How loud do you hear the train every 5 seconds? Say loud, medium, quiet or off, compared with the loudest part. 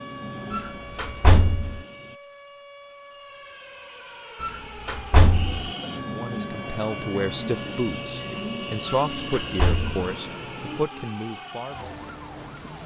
medium, loud, medium.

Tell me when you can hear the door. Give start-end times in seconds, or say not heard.
0.5-1.8, 4.4-5.7, 8.8-9.9.